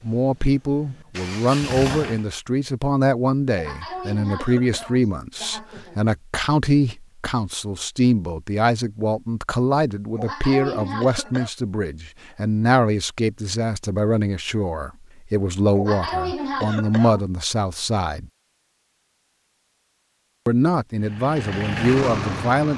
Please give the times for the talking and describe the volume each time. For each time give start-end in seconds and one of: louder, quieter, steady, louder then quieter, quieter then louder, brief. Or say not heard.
0.0-18.3 steady
20.4-22.7 brief.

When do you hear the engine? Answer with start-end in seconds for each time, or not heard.
0.0-2.2, 20.9-22.7.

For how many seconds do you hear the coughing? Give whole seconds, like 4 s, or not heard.
5 s.